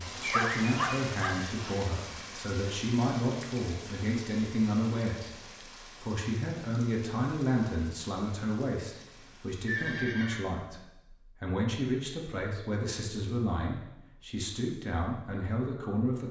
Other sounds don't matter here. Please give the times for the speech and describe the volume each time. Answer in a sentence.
The speech can be heard from 0.0 to 16.2 s, at a steady volume.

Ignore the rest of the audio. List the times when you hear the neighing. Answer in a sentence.
The neighing can be heard from 9.7 to 10.4 s.